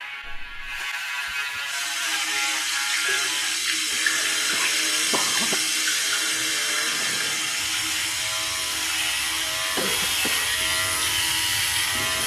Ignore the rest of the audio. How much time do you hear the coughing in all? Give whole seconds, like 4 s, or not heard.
3 s.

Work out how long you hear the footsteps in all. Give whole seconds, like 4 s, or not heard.
not heard.